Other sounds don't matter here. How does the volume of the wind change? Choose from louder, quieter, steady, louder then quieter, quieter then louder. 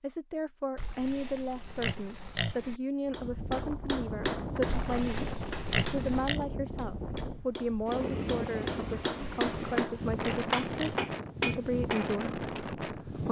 steady.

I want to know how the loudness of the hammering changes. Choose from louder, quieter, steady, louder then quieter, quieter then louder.
quieter then louder.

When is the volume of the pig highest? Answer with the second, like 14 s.
6 s.